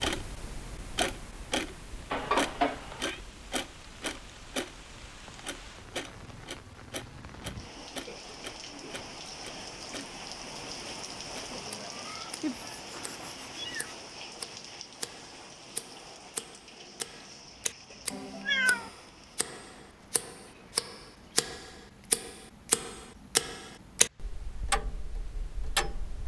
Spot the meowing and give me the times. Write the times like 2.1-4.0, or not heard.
2.1-3.2, 12.4-13.9, 18.1-18.9.